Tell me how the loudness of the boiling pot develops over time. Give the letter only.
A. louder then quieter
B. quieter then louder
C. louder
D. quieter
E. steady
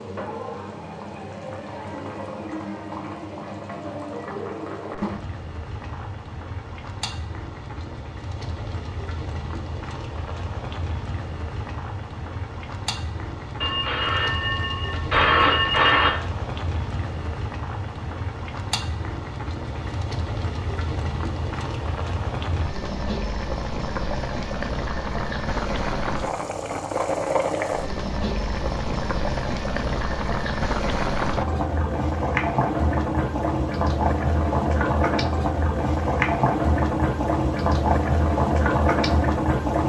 C.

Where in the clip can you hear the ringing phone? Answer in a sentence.
You can hear the ringing phone from 13.6 to 16.1 s.